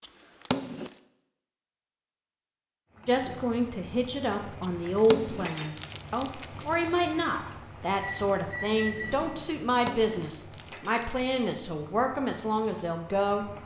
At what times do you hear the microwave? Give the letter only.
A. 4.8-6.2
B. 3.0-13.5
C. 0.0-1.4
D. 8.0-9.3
D.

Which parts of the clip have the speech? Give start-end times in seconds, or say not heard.
3.0-13.5.